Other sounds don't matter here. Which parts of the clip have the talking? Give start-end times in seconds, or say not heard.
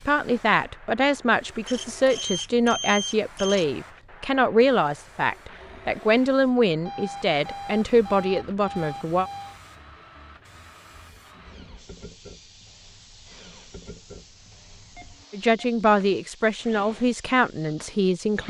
0.1-9.2, 15.3-18.4.